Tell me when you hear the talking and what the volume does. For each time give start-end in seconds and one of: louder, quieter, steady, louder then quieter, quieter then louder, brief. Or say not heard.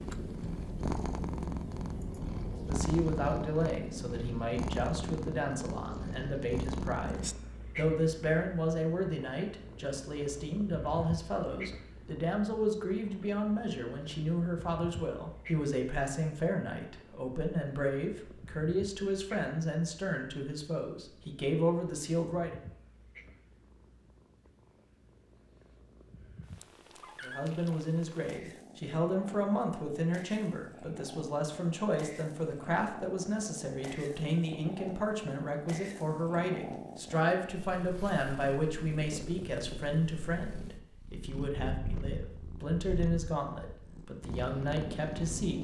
2.6-22.6 steady
27.2-45.5 steady.